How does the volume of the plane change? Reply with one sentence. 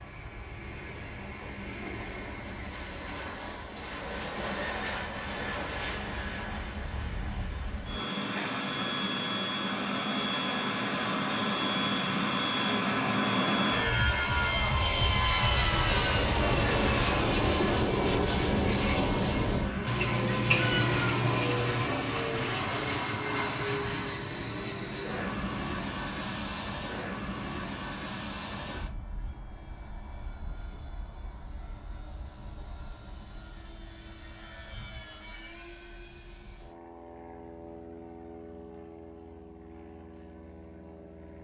The loudness of the plane goes up, then down.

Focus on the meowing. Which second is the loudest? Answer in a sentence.
The volume of the meowing peaks at 21 seconds.